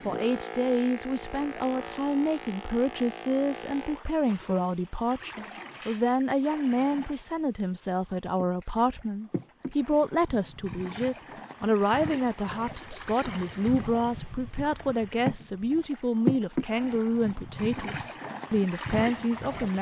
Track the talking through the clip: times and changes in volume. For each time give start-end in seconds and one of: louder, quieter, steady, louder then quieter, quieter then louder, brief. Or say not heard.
0.1-19.7 steady.